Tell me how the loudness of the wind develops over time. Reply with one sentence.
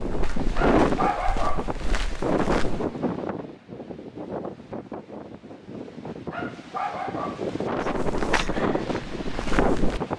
The volume of the wind goes down, then up.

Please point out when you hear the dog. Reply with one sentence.
You can hear the dog from 0.5 to 1.7 s and from 6.3 to 7.5 s.